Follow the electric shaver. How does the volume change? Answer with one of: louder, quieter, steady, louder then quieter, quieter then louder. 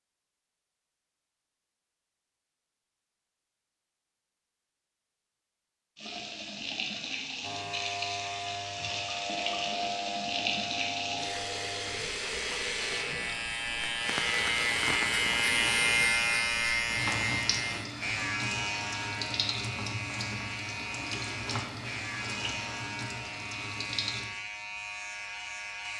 louder then quieter.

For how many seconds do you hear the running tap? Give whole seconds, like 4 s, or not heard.
18 s.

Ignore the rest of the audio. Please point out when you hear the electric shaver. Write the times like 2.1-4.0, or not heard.
7.4-25.9.